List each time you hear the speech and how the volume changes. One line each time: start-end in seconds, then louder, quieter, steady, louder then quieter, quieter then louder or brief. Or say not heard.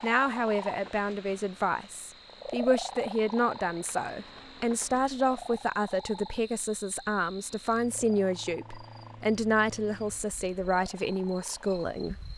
0.0-12.2 steady.